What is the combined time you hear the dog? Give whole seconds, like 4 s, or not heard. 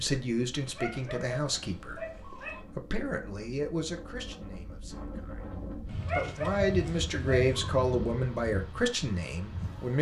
4 s.